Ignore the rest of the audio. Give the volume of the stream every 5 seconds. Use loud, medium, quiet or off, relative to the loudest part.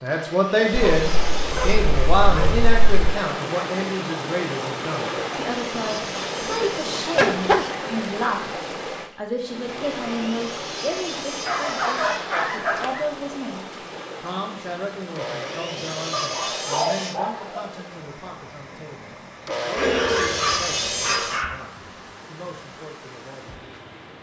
loud, loud, medium, medium, quiet.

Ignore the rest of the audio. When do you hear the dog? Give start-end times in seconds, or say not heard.
0.7-2.9, 7.2-7.7, 11.4-13.1, 16.1-17.6, 19.8-21.6.